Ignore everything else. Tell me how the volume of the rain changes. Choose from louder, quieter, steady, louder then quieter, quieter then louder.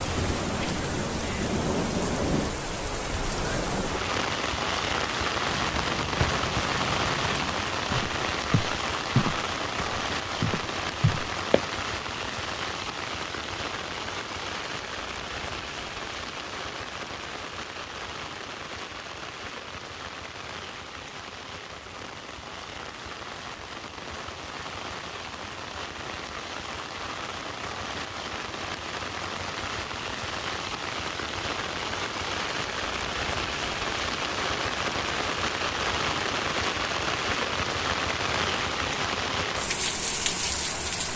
quieter then louder.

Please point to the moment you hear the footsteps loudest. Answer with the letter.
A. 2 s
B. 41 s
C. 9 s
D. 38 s
C.